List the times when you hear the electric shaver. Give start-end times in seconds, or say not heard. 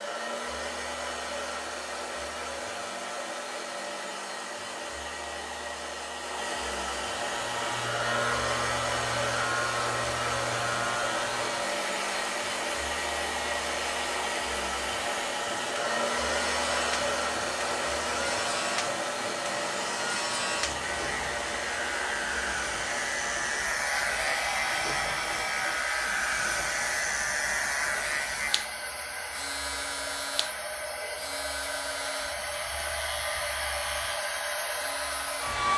7.2-35.7.